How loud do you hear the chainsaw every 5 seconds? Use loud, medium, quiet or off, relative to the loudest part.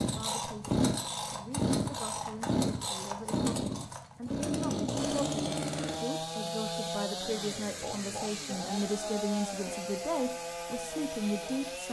loud, loud, medium.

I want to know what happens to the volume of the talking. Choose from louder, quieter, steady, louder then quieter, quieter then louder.
louder.